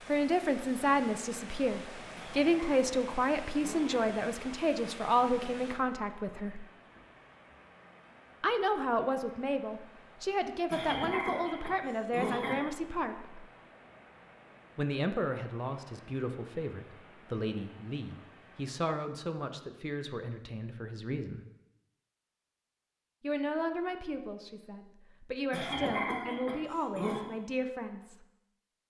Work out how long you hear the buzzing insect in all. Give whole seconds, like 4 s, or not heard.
not heard.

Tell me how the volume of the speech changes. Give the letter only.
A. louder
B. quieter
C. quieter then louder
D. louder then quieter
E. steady
B.